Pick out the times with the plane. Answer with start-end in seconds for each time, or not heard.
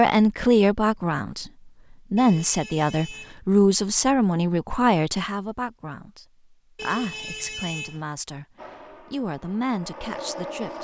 8.6-10.8.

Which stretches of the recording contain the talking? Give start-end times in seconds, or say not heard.
0.0-1.5, 2.1-8.4, 9.1-10.8.